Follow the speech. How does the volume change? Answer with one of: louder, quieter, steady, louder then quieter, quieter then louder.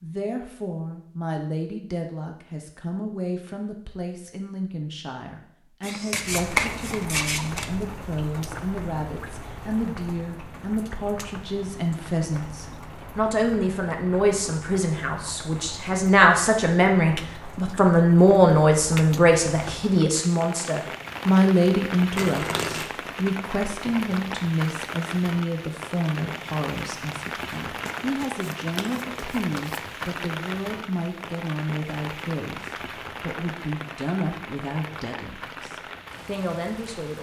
louder then quieter.